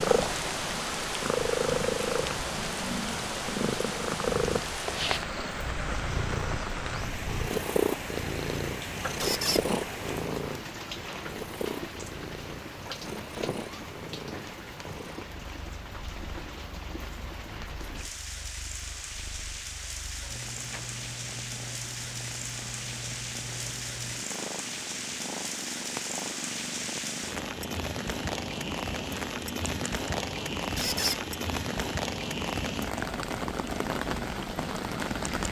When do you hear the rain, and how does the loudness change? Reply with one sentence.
You can hear the rain from 0.0 to 35.4 s, getting quieter then louder.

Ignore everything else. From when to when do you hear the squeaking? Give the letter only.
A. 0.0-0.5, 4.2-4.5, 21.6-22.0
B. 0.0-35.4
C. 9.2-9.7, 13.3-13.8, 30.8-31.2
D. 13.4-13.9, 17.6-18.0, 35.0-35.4
C.